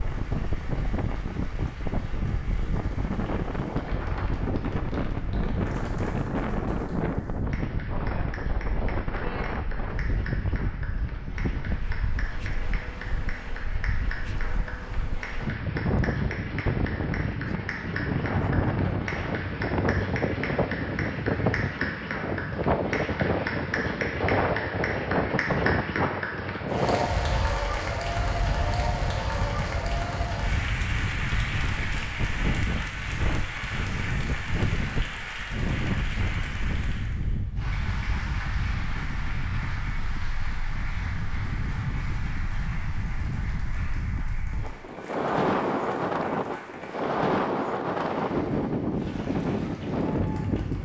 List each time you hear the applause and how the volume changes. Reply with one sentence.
You can hear the applause from 0.0 to 50.8 s, getting louder then quieter.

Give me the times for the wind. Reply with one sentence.
You can hear the wind from 0.0 to 50.8 s.